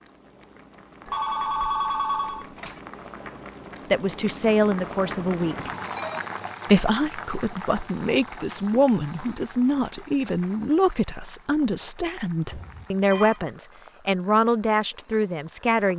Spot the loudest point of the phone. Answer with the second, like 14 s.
2 s.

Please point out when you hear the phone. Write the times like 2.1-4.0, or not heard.
1.1-2.8, 5.4-6.3, 12.5-13.4.